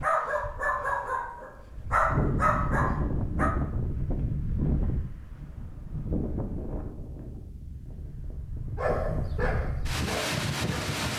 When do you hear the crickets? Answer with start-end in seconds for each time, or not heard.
not heard.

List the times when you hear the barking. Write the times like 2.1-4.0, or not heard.
0.0-3.5, 8.8-10.9.